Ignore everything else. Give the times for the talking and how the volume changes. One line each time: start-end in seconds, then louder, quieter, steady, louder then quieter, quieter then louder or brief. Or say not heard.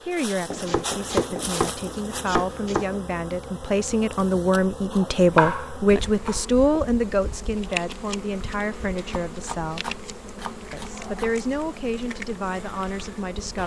0.0-10.0 louder then quieter
10.7-13.6 brief.